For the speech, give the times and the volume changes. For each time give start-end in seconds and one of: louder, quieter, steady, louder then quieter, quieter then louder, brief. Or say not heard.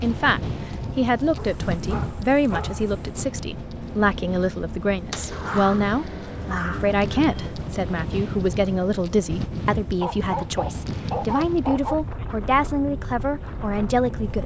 0.0-14.4 steady.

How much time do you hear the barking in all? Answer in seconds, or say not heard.
6 s.